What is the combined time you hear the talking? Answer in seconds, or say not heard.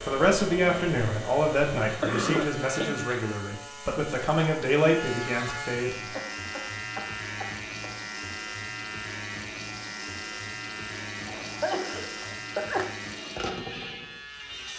6 s.